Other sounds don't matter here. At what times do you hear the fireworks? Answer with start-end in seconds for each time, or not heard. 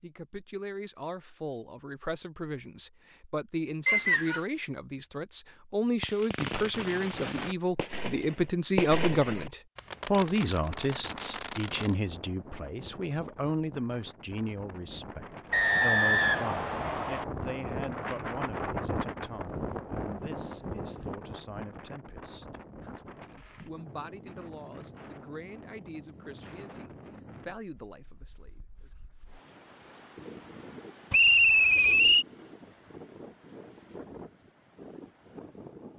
6.0-11.9.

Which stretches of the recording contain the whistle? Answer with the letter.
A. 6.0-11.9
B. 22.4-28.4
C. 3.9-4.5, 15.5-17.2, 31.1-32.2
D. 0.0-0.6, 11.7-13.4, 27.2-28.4
C.